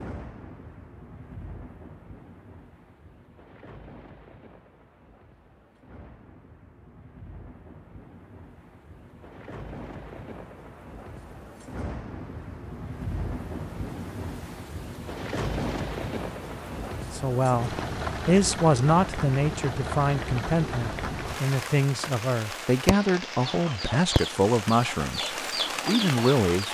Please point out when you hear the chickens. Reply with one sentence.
The chickens can be heard from 23.4 to 26.6 s.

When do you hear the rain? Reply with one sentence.
You can hear the rain from 0.0 to 26.6 s.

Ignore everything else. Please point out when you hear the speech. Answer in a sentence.
You can hear the speech from 17.1 to 26.6 s.